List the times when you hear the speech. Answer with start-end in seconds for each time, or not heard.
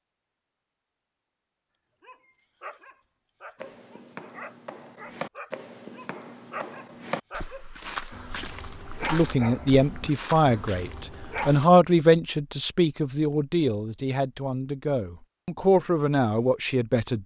9.0-17.2.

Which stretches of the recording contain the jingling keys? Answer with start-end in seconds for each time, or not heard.
not heard.